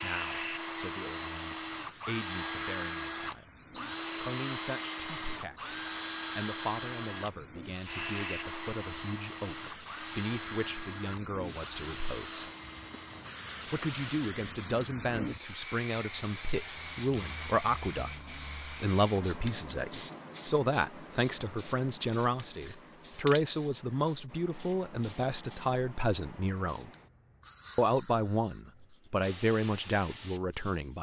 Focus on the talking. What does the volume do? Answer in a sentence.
The volume of the talking goes up.